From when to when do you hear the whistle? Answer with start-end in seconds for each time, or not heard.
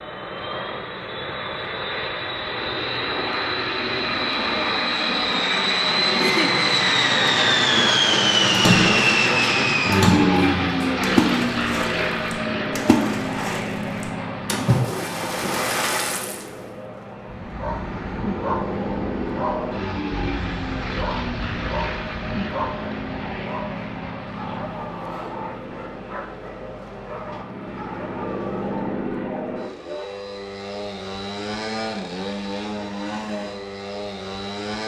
not heard.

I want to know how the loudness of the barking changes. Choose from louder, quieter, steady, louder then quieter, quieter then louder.
quieter.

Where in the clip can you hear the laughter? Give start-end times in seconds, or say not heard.
6.1-6.5.